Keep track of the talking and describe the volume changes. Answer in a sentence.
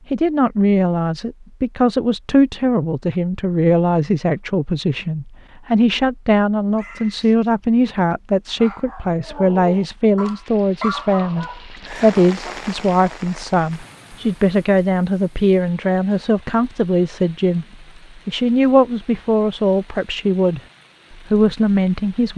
The loudness of the talking stays about the same.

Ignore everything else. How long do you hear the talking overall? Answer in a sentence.
You can hear the talking for 22 seconds altogether.